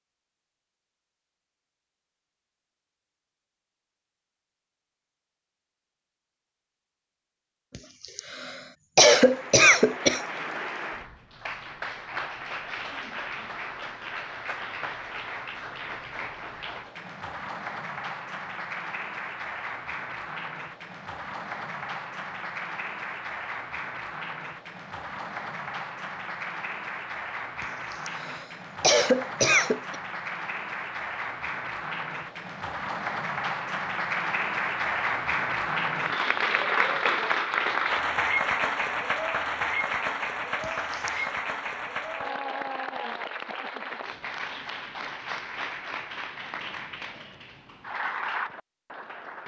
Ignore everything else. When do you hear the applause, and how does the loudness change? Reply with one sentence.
You can hear the applause from 9.1 to 49.4 s, getting louder then quieter.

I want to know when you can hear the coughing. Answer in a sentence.
The coughing can be heard from 7.8 to 10.2 s, from 27.6 to 29.9 s and from 40.6 to 41.3 s.